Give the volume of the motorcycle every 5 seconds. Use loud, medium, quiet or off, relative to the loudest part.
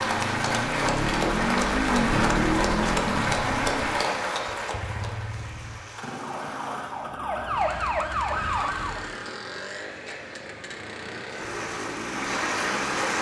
loud, medium, medium.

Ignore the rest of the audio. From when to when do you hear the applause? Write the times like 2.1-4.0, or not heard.
0.0-7.2, 11.3-13.1.